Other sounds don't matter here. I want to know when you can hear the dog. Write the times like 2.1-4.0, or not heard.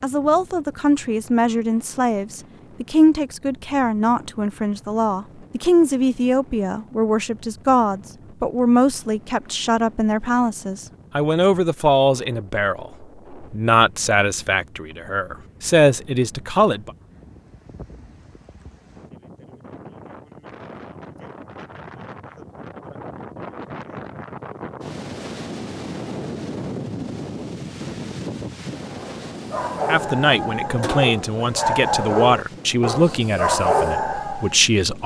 28.9-34.5.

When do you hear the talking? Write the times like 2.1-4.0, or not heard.
0.0-16.9, 29.9-35.0.